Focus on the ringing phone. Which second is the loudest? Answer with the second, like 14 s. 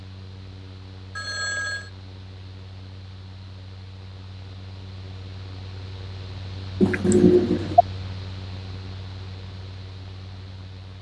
7 s.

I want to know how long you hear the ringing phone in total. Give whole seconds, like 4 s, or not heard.
2 s.